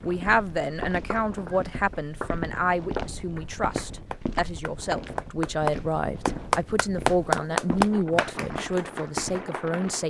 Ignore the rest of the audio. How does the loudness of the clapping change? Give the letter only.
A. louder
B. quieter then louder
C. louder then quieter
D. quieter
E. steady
C.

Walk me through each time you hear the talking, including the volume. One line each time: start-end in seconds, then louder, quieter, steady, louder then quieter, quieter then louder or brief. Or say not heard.
0.0-10.0 steady.